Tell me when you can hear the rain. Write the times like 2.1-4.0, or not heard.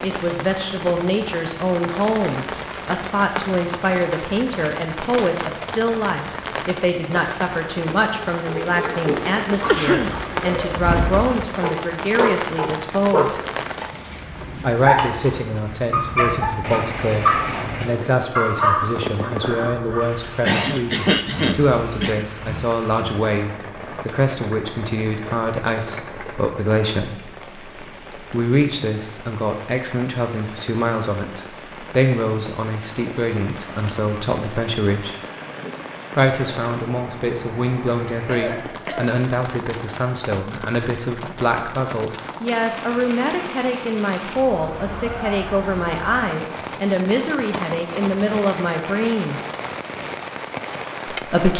0.0-51.5.